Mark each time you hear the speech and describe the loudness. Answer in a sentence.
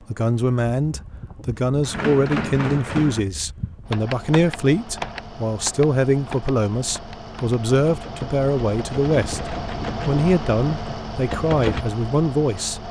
The speech can be heard from 0.1 to 9.4 s, at a steady volume; and briefly from 10.1 to 12.8 s.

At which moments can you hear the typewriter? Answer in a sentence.
You can hear the typewriter from 1.9 to 11.8 s.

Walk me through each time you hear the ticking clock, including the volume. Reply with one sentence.
The ticking clock can't be heard in this clip.